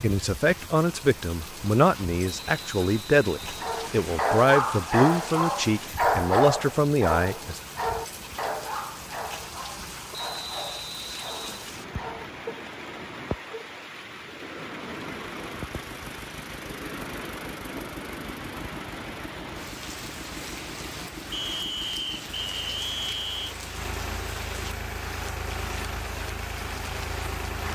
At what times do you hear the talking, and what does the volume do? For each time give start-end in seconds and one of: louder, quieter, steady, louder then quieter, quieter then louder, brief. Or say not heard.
0.0-7.6 steady.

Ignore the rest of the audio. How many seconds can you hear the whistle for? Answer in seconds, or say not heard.
6 s.